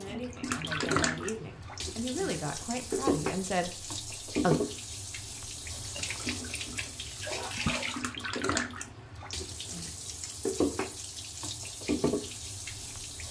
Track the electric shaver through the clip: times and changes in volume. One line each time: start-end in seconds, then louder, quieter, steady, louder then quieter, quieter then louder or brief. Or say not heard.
not heard.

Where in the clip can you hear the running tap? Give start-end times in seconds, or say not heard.
0.0-13.2.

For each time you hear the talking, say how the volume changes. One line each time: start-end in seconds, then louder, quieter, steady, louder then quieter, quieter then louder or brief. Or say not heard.
0.0-4.5 louder.